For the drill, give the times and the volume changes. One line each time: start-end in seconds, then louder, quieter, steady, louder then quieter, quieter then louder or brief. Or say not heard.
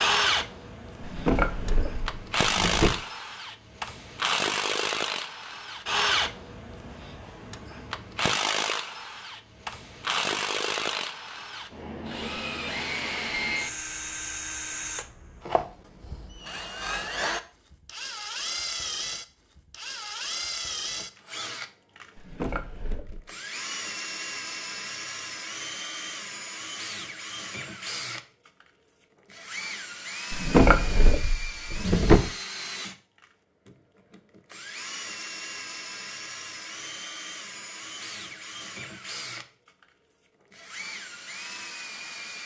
0.0-42.4 quieter.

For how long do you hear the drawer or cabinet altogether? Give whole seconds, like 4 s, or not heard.
5 s.